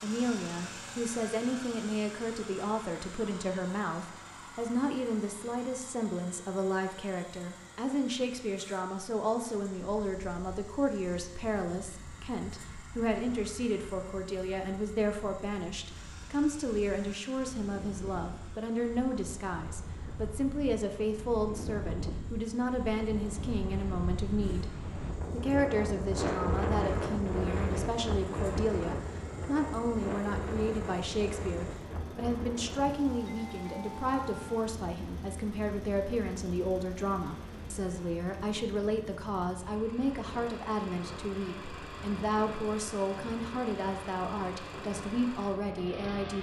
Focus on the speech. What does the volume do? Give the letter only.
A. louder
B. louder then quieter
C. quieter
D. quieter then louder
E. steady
E.